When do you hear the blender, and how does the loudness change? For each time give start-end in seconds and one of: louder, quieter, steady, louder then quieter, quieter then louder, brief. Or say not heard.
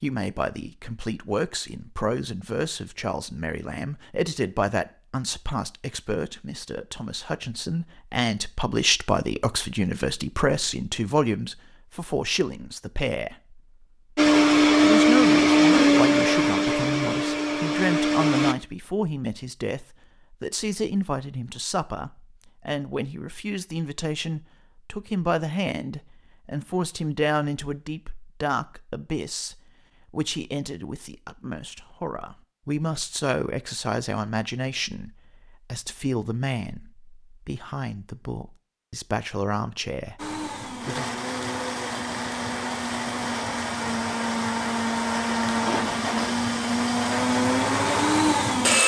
14.2-18.6 quieter
40.1-48.8 louder.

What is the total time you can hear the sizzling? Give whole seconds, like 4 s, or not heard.
not heard.